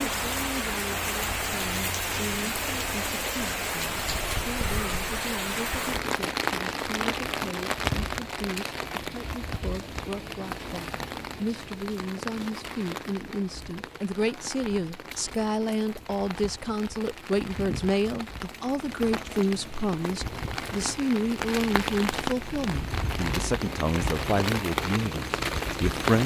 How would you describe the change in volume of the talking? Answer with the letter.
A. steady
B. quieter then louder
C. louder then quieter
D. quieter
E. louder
E.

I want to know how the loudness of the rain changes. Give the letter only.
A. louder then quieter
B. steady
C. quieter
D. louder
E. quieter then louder
E.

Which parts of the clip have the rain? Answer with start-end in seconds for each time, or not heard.
0.0-26.2.